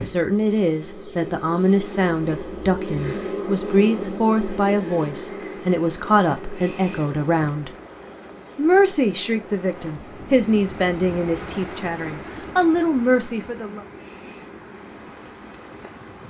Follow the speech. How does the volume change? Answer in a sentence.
The loudness of the speech stays about the same.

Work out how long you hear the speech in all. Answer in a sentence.
The speech can be heard for 13 seconds in total.